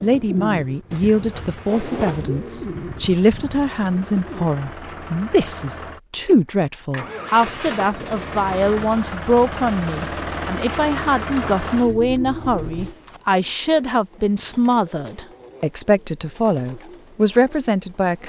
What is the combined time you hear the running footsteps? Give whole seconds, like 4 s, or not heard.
not heard.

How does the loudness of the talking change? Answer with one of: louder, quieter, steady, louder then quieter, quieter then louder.
steady.